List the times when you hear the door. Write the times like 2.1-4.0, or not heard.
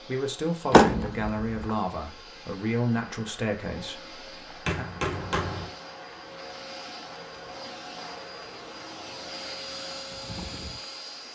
0.7-1.7.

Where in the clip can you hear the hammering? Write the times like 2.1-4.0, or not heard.
4.7-5.7.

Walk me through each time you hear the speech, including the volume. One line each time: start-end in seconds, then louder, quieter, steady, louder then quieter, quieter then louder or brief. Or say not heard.
0.1-4.8 quieter.